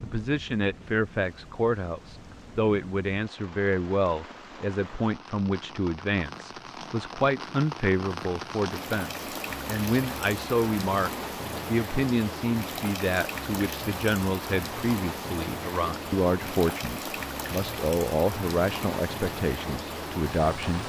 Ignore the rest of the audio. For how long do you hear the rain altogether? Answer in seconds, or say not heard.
21 s.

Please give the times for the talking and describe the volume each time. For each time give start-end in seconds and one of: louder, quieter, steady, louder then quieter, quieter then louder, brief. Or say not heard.
0.0-20.8 steady.